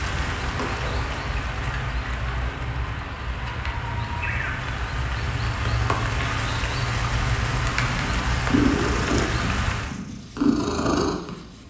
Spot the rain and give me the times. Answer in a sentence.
You can hear the rain from 0.0 to 9.9 s.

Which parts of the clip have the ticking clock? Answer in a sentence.
The ticking clock can't be heard in this clip.